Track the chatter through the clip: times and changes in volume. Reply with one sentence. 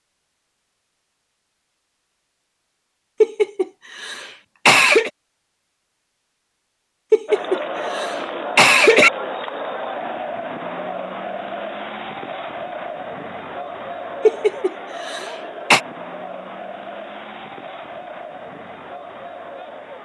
You can hear the chatter from 7.2 to 19.9 s, getting quieter.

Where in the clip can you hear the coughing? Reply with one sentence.
The coughing can be heard from 3.2 to 5.1 s, from 7.1 to 9.1 s and from 14.2 to 15.8 s.